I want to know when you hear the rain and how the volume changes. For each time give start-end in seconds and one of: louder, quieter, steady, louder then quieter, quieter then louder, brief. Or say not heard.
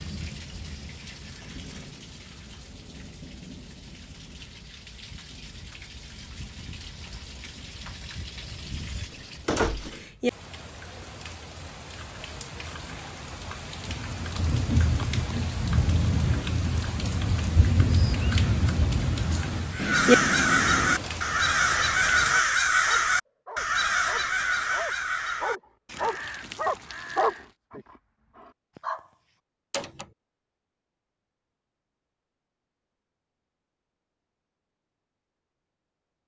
0.0-22.4 louder.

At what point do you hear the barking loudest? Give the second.
27 s.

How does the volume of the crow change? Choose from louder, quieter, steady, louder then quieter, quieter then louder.
quieter.